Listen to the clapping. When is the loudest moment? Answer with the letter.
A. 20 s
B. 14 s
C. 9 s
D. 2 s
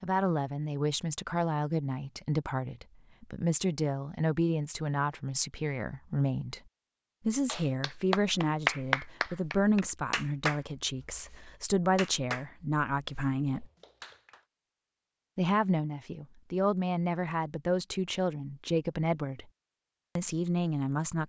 C.